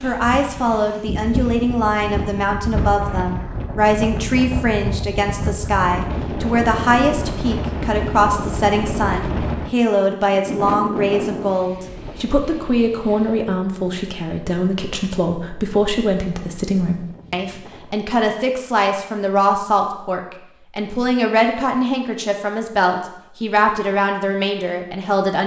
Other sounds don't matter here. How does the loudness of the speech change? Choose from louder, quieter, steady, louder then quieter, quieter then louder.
steady.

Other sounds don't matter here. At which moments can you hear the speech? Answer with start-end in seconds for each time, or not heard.
0.0-25.4.